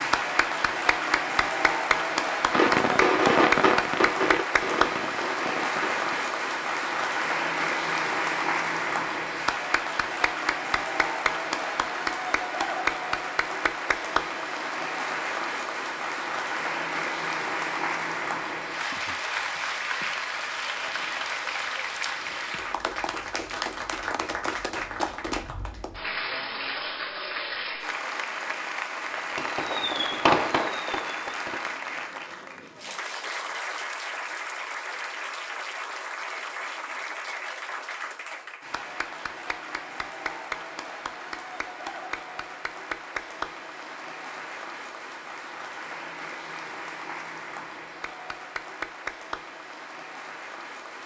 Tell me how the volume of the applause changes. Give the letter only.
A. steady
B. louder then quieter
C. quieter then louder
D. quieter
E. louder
D.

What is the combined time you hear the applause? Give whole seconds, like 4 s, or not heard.
51 s.